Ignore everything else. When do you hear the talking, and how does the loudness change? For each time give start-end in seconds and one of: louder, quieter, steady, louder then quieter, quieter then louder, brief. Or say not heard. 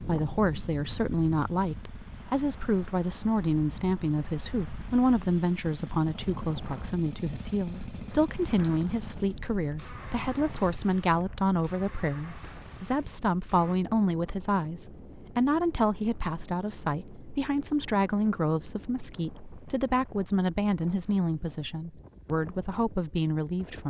0.1-23.8 steady.